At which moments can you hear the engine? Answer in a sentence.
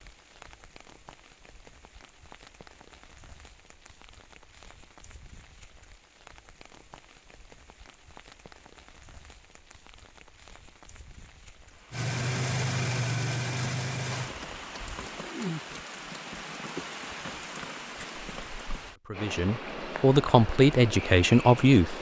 The engine can be heard from 11.9 to 14.3 s.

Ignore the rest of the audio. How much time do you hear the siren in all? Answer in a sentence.
The siren can't be heard in this clip.